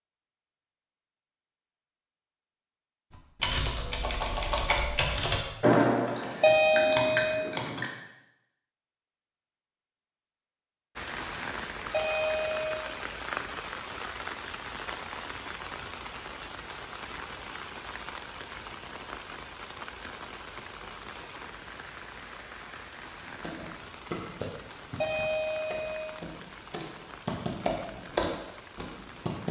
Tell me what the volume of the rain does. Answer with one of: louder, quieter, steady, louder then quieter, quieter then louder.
quieter.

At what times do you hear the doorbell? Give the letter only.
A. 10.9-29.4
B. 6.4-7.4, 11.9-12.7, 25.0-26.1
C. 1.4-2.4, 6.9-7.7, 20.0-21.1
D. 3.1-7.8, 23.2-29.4
B.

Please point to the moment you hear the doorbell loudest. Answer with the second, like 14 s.
7 s.